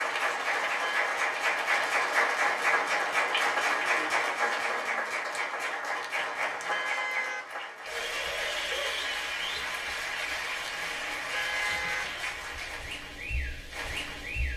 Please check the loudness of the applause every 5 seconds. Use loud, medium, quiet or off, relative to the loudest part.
loud, medium, medium.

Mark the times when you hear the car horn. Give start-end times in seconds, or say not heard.
0.3-1.1, 6.0-7.4, 10.8-12.1.